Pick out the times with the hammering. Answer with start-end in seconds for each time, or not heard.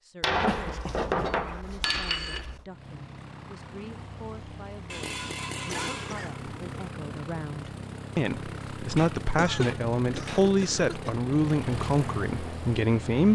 0.2-2.6, 4.9-6.9, 8.9-10.6.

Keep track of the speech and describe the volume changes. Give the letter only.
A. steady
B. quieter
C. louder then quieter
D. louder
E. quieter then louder
D.